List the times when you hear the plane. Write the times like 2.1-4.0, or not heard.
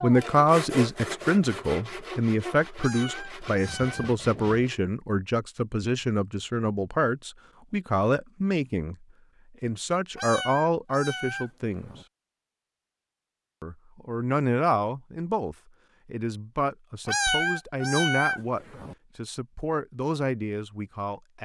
not heard.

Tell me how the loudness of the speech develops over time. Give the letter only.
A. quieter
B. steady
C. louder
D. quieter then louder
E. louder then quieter
A.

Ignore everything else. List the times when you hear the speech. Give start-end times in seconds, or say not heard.
0.0-11.9, 13.6-21.4.